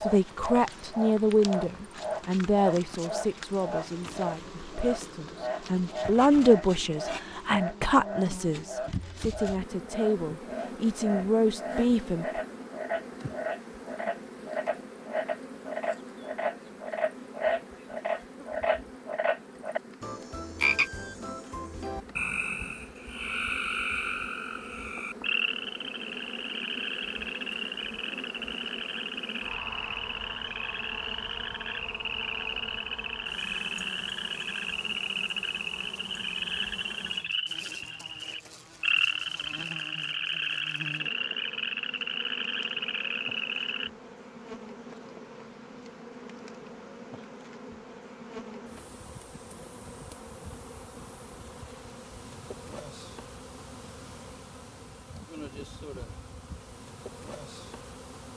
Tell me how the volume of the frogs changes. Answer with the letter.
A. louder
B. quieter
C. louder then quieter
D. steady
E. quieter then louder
D.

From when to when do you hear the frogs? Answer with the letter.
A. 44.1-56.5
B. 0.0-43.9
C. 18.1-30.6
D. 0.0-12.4
B.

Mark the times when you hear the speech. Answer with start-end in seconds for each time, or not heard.
0.0-12.4.